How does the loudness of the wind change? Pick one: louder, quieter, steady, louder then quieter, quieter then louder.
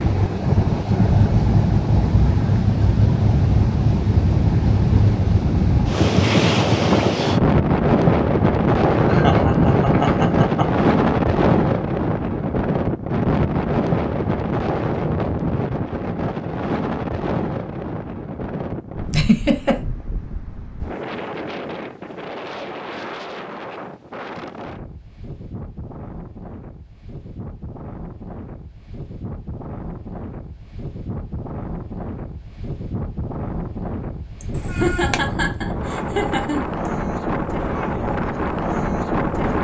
quieter then louder.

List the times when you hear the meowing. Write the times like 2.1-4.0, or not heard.
34.5-35.2.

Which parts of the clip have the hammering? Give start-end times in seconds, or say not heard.
not heard.